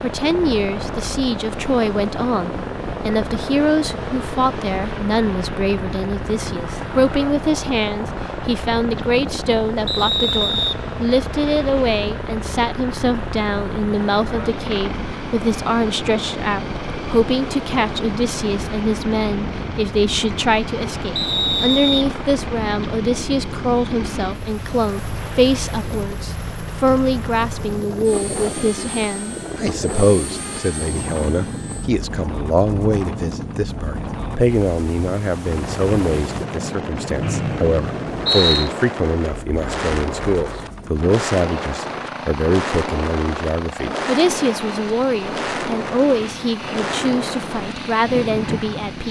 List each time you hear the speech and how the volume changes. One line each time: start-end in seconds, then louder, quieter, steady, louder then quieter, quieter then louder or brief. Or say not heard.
0.0-49.0 steady.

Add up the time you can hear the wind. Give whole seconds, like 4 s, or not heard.
49 s.